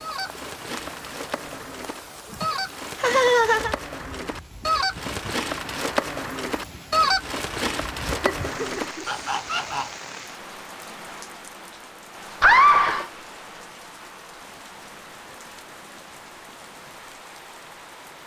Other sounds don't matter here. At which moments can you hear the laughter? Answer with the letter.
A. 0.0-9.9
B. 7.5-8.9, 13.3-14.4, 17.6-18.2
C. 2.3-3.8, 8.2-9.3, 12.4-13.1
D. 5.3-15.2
C.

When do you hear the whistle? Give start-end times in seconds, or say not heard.
not heard.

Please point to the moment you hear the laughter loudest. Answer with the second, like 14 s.
13 s.